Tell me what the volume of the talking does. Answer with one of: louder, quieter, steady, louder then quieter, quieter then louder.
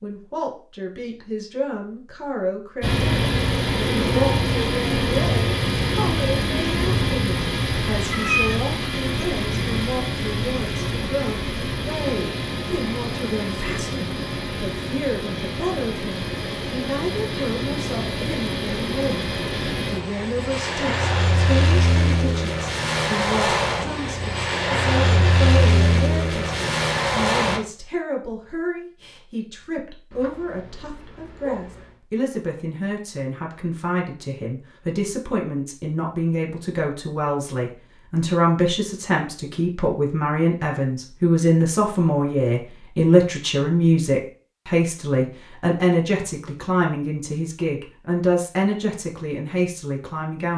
louder.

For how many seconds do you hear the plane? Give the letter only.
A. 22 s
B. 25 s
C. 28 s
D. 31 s
B.